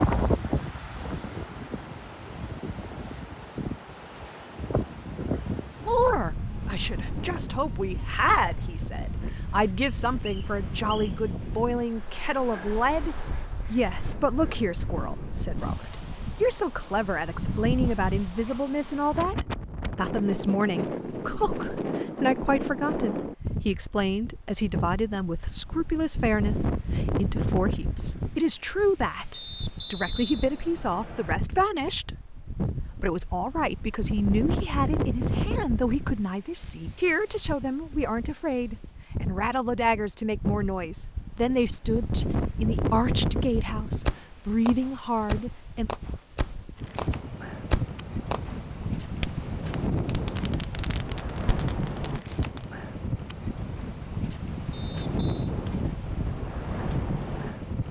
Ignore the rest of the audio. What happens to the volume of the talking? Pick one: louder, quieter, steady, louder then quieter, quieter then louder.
steady.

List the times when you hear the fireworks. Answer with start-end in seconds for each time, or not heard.
44.0-52.6.